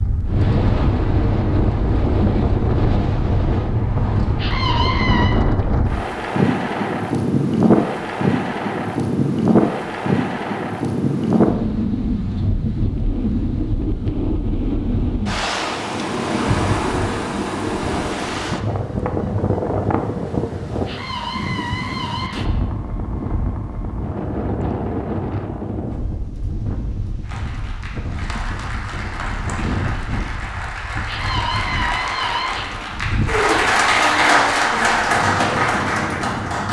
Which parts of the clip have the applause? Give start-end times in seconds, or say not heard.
27.2-36.6.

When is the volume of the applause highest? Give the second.
34 s.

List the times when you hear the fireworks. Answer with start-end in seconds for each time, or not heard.
not heard.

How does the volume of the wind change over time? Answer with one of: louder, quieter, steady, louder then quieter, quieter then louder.
quieter.